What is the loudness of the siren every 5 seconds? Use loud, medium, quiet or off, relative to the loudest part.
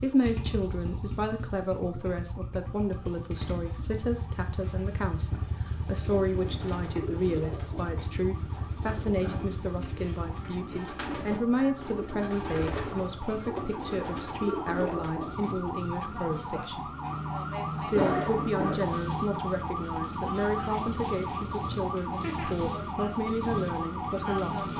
quiet, quiet, medium, loud, loud.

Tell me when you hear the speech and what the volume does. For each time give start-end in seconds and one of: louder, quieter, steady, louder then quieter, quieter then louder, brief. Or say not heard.
0.0-16.9 steady
17.8-24.6 steady.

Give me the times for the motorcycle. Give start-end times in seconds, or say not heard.
0.0-10.6.